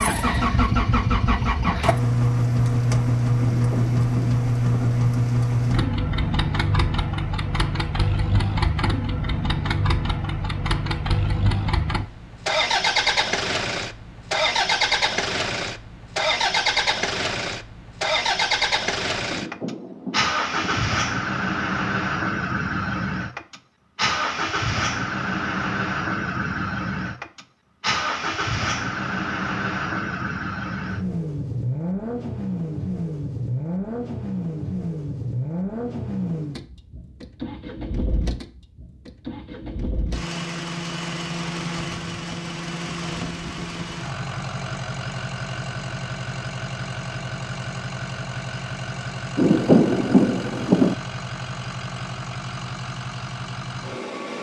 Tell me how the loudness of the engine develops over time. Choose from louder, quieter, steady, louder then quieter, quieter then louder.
quieter.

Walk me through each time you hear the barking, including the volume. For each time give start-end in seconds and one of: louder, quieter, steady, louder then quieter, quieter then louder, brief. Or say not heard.
not heard.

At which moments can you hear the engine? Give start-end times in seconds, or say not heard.
0.0-54.3.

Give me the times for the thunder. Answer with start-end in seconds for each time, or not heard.
3.4-5.0, 19.2-20.9, 49.4-51.0.